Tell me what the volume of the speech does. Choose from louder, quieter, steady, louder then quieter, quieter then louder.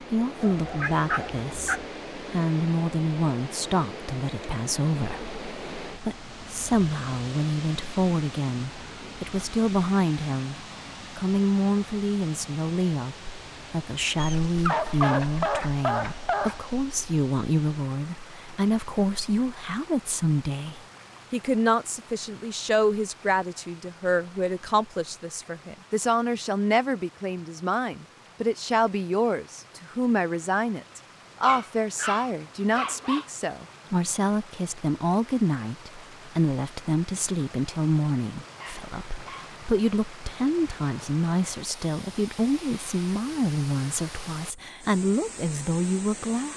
steady.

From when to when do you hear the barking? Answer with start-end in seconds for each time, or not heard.
0.4-1.9, 14.2-16.8, 31.4-33.3, 38.5-39.6.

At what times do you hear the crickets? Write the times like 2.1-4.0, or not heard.
not heard.